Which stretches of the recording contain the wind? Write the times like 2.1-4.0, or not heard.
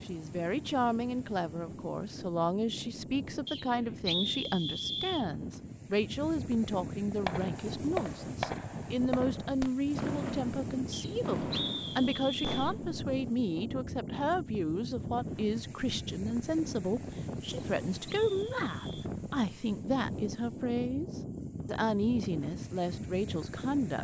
0.0-23.9.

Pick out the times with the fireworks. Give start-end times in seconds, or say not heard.
7.2-13.0.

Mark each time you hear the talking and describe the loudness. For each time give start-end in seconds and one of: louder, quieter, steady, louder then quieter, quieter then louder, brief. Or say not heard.
0.0-23.9 steady.